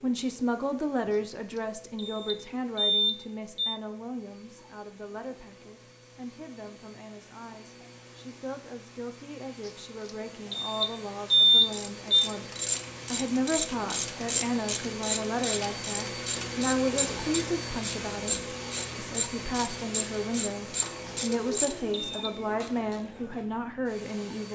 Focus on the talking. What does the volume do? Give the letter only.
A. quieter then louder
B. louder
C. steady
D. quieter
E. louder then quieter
A.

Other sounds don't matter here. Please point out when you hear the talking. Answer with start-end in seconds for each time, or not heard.
0.0-12.4, 13.1-24.5.